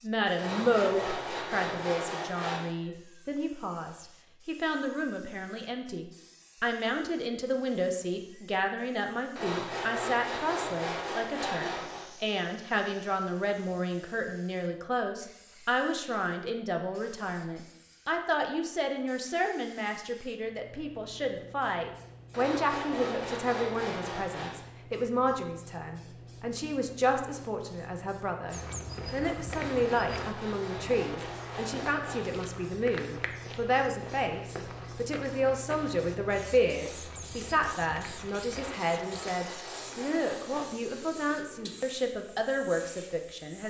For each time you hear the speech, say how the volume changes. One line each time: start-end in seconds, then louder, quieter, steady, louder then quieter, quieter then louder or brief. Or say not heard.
0.0-43.6 steady.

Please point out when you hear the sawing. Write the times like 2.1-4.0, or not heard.
0.3-2.6, 9.3-12.1, 22.3-24.6, 29.4-32.4, 38.5-40.7.